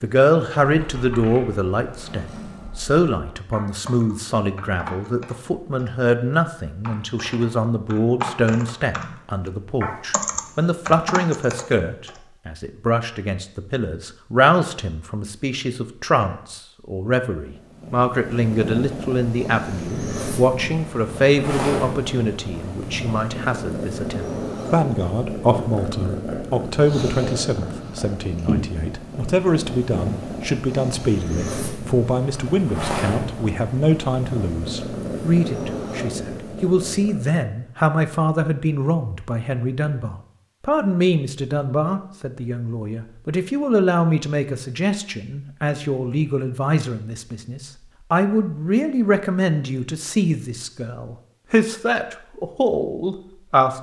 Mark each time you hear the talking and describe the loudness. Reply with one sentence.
You can hear the talking from 0.0 to 53.7 s, at a steady volume.